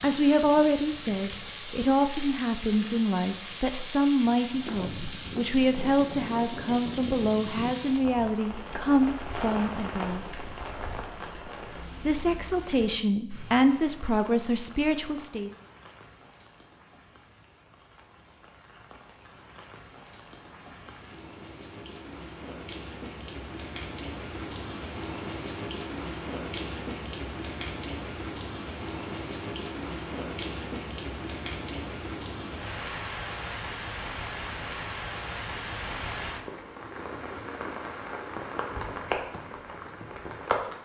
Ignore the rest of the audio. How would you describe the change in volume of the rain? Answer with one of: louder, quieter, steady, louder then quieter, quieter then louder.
quieter then louder.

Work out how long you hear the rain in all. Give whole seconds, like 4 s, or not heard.
41 s.